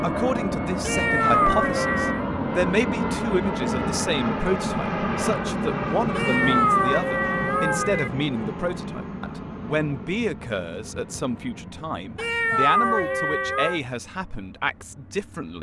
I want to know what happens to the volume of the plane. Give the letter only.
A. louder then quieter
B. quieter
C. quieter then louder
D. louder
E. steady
B.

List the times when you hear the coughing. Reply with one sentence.
You can't hear the coughing here.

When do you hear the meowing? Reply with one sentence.
You can hear the meowing from 0.8 to 2.2 s, from 6.2 to 8.1 s and from 12.2 to 13.8 s.